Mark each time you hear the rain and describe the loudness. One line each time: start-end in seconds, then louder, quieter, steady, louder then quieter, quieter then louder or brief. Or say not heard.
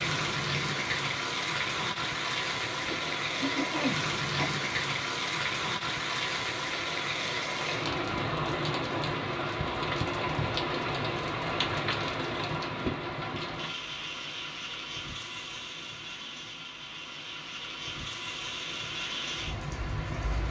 0.0-20.4 quieter.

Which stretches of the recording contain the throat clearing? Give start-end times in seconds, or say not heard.
2.6-4.5.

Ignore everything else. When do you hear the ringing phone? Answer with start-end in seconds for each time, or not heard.
not heard.